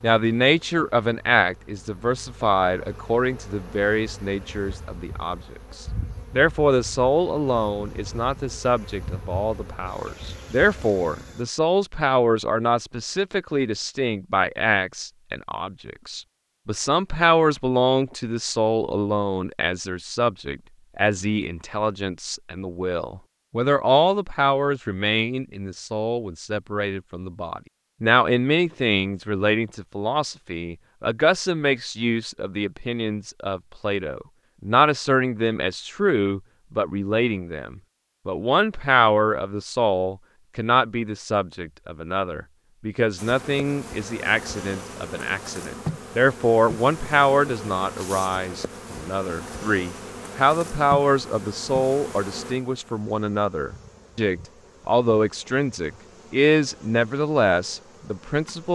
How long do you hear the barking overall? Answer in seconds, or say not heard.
not heard.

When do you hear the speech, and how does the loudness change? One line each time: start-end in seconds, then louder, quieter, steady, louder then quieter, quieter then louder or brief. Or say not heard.
0.0-58.7 steady.